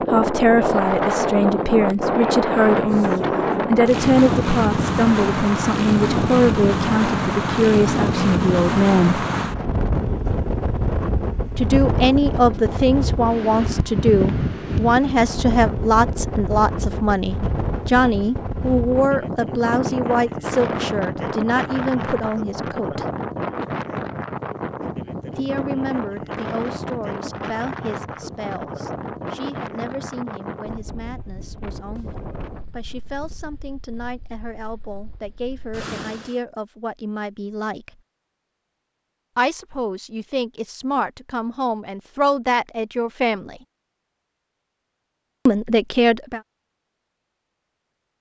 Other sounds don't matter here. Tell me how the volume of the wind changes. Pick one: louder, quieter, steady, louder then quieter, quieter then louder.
quieter.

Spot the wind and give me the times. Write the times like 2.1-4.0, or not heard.
0.0-36.4.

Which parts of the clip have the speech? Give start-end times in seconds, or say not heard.
0.0-9.2, 11.6-23.1, 25.4-38.0, 39.4-43.6, 45.5-46.4.